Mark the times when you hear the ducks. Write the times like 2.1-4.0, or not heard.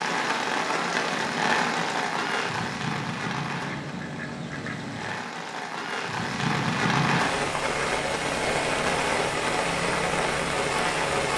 3.6-5.2.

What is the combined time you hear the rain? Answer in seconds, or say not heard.
11 s.